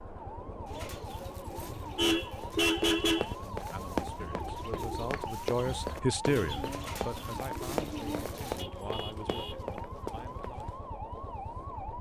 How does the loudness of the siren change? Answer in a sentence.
The loudness of the siren stays about the same.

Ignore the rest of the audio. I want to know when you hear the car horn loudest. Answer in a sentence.
The loudest moment of the car horn is at 3 seconds.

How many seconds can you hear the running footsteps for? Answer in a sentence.
The running footsteps can be heard for 8 seconds in total.